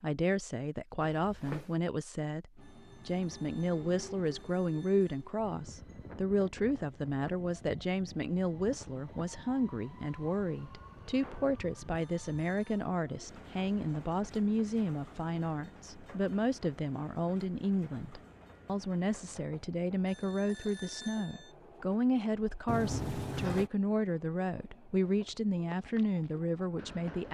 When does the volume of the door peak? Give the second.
23 s.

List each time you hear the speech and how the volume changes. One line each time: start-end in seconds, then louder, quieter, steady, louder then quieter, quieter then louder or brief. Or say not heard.
0.0-27.2 steady.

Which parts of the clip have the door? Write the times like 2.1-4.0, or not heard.
1.0-1.7, 11.1-11.6, 22.6-23.7.